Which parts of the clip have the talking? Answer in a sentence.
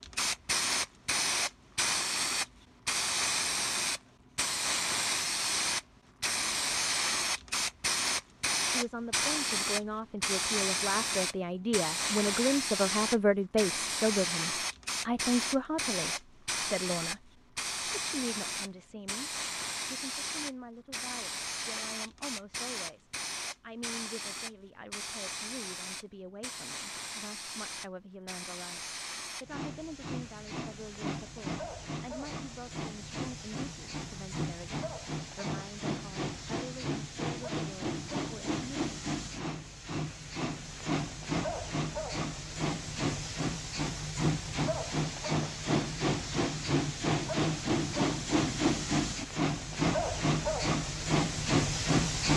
You can hear the talking from 8.7 to 38.6 s.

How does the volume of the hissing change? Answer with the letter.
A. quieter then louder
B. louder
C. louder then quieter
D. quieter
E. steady
A.